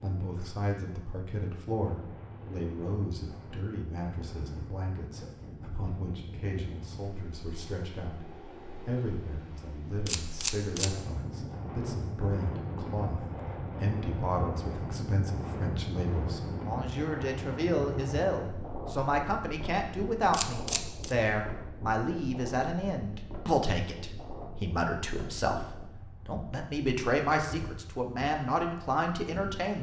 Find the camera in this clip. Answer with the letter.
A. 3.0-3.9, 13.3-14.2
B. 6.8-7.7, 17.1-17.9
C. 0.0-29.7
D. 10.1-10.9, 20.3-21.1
D.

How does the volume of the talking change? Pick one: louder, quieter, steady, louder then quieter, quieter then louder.
louder.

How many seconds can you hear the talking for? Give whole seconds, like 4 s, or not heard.
30 s.